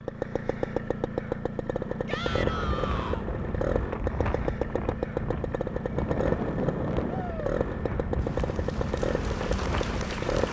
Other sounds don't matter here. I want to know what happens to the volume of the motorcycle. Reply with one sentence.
The loudness of the motorcycle stays about the same.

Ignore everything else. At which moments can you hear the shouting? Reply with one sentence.
You can hear the shouting from 2.0 to 3.2 s and from 7.0 to 7.5 s.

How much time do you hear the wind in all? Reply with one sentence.
The wind can be heard for 8 seconds in total.